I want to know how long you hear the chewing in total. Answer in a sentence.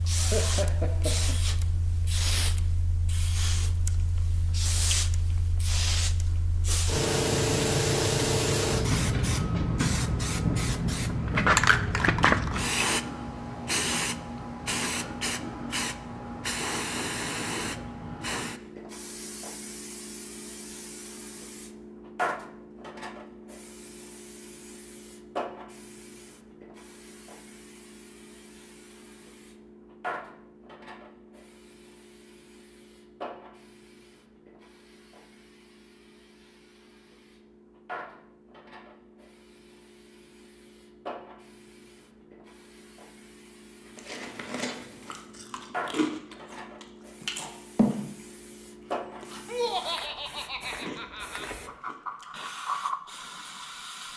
The chewing can be heard for 8 seconds in total.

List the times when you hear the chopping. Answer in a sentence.
The chopping can't be heard in this clip.